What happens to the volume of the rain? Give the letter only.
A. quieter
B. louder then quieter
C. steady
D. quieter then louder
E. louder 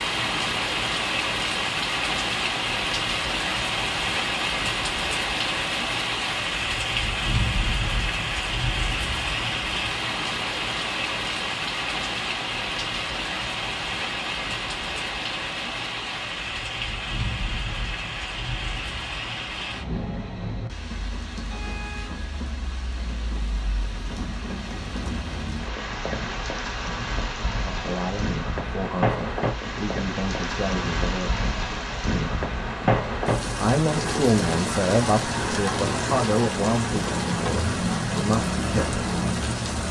D.